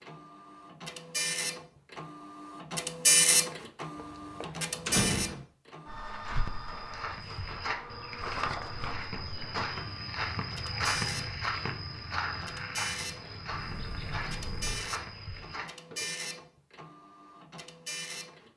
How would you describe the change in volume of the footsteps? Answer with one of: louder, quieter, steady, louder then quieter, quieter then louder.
louder then quieter.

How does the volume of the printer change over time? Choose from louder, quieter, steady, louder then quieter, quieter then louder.
quieter.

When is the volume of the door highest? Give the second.
5 s.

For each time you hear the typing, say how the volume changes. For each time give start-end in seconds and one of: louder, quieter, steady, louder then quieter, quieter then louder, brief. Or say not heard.
not heard.